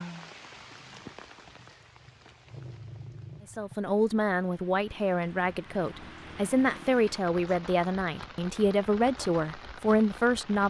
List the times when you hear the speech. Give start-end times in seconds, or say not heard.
3.5-10.6.